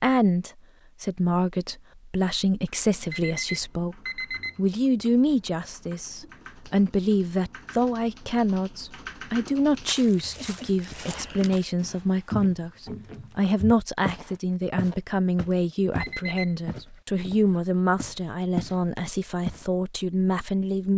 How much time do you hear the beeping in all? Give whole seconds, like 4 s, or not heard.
2 s.